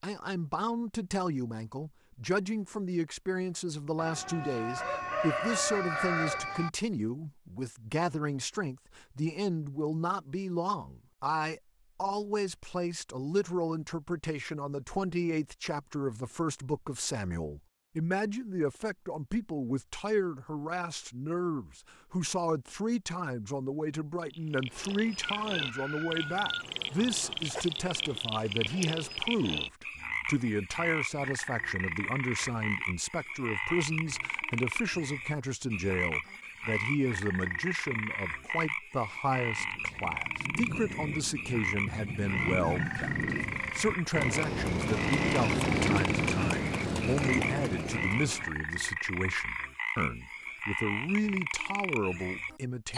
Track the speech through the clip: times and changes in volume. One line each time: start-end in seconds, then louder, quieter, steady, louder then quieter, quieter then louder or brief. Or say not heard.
0.0-52.9 steady.